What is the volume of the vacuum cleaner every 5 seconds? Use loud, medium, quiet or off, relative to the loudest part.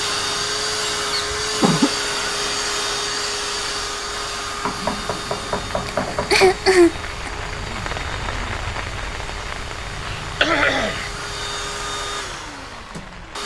loud, medium, medium.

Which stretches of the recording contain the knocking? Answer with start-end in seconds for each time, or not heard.
4.6-6.6.